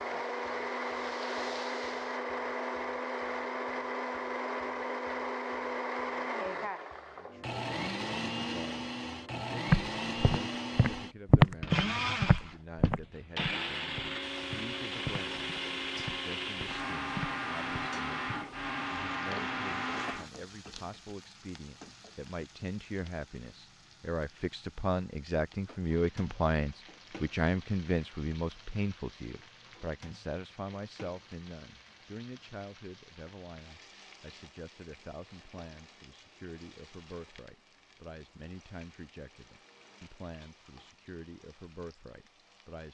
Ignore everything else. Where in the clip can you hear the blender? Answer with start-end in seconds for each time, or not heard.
0.0-20.3.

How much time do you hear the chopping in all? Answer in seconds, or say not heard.
not heard.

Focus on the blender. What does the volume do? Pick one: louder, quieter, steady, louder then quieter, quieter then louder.
steady.